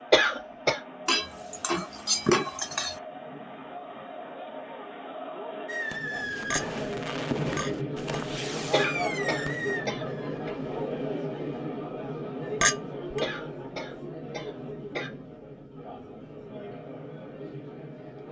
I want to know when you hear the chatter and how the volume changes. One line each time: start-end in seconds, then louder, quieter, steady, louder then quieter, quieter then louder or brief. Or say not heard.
0.0-18.2 louder then quieter.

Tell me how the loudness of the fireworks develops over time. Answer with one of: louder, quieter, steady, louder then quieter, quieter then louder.
quieter.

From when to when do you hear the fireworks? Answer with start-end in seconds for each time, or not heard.
5.7-11.6.